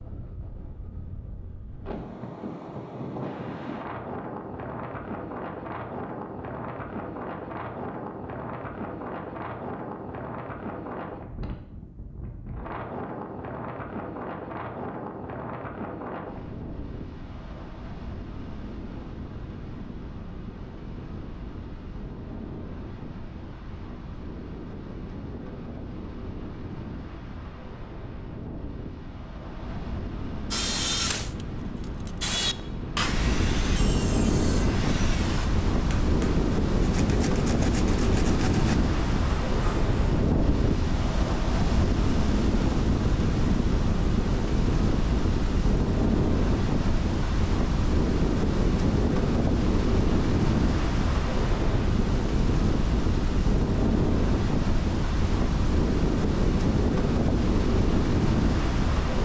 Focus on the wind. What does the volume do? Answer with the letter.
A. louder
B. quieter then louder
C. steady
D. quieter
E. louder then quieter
A.